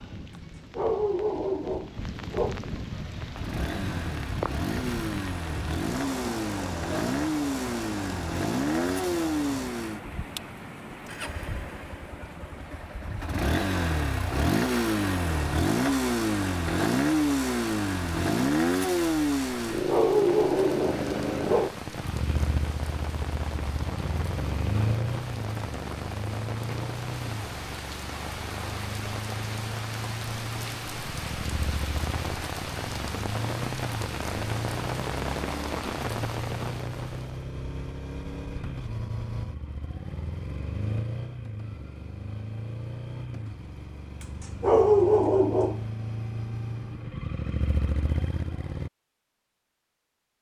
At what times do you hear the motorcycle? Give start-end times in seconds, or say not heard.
3.0-48.9.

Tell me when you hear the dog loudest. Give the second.
45 s.